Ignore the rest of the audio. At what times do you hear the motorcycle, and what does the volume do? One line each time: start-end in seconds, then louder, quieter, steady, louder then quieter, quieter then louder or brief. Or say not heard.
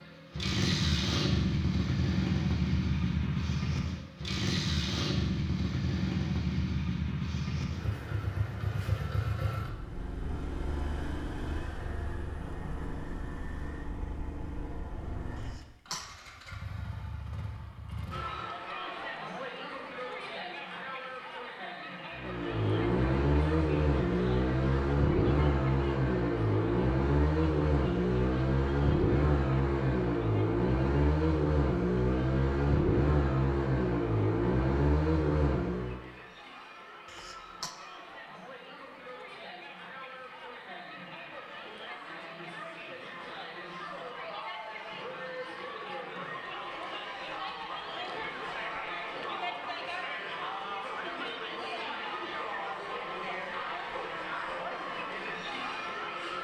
0.0-18.4 quieter
22.1-36.0 steady.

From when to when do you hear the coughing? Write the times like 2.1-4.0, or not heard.
15.3-16.1, 37.0-37.7.